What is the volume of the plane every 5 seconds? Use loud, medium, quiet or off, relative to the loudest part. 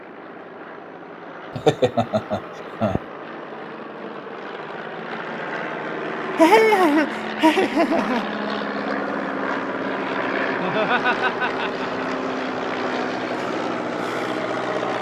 medium, loud, loud.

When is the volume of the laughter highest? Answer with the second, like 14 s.
7 s.